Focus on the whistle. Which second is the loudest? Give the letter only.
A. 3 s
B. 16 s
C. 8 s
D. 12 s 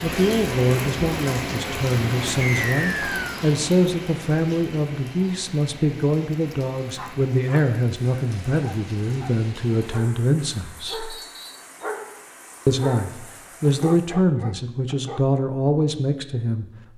A.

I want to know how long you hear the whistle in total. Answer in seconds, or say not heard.
2 s.